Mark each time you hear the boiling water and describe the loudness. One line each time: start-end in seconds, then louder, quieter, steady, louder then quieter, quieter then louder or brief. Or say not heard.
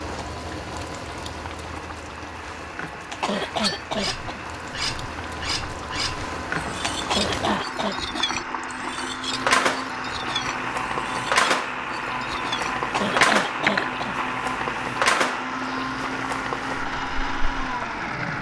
0.0-18.3 louder.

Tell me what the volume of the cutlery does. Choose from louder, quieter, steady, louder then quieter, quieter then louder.
quieter then louder.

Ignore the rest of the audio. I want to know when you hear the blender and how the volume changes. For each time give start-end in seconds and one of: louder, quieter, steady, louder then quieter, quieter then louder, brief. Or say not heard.
0.0-18.3 louder.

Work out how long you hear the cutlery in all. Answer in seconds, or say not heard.
11 s.